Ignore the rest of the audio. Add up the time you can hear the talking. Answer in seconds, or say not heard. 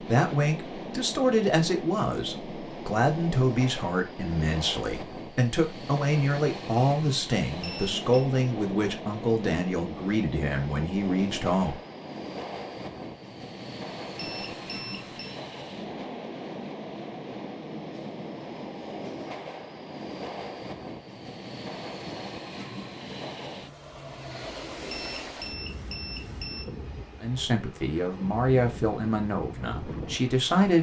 15 s.